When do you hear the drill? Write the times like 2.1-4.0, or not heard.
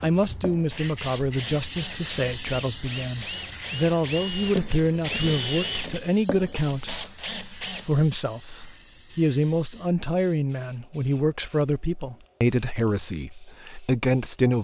0.0-7.9.